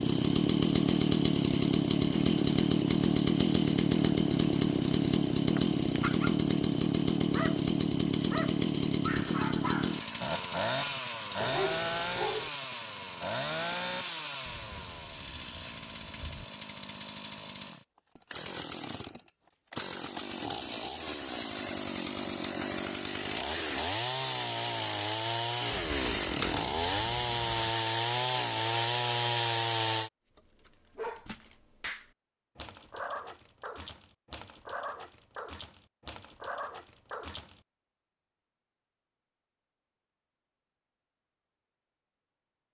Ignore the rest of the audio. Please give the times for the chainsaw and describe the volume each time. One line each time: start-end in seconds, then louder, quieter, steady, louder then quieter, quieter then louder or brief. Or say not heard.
0.0-30.1 quieter then louder.